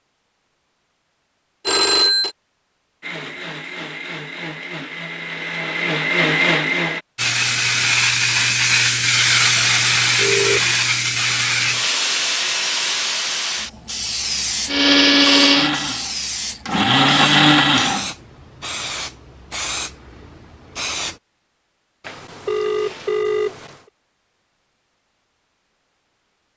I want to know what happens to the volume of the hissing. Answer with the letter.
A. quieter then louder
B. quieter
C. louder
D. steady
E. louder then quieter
B.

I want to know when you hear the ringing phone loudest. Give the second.
2 s.